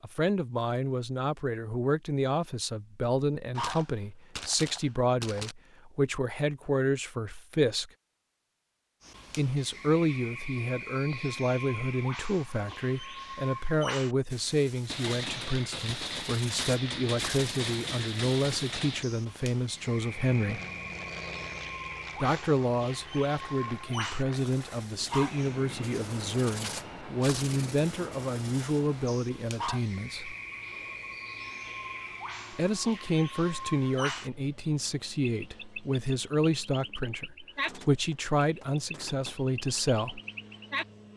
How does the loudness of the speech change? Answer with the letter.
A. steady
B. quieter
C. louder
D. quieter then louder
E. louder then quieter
A.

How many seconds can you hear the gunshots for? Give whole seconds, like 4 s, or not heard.
8 s.